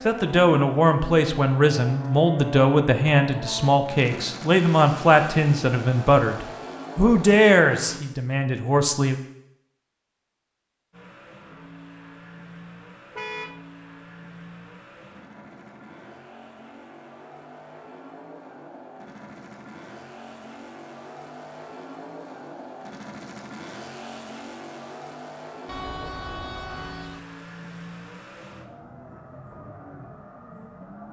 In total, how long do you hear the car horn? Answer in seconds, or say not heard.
2 s.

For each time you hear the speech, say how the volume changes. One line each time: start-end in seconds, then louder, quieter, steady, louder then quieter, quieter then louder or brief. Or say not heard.
0.1-9.2 steady.